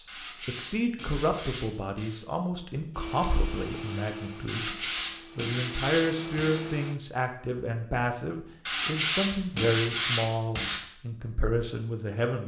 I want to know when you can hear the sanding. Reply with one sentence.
You can hear the sanding from 0.1 to 2.2 s, from 4.5 to 6.6 s and from 8.7 to 10.8 s.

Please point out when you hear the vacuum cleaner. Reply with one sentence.
The vacuum cleaner can be heard from 2.9 to 7.0 s.